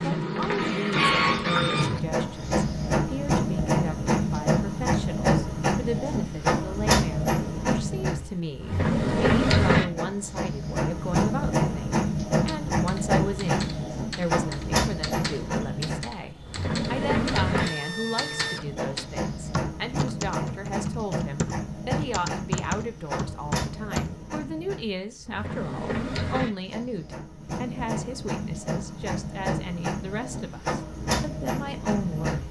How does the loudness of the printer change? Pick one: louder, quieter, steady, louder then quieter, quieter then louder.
quieter.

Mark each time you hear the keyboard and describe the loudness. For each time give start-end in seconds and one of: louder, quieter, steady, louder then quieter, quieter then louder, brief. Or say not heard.
12.4-24.1 louder.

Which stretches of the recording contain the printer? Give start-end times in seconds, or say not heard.
0.0-32.4.